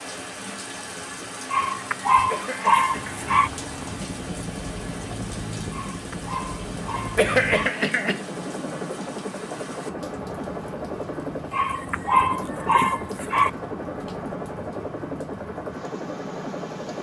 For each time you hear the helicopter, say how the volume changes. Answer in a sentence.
The helicopter can be heard from 2.8 to 16.9 s, at a steady volume.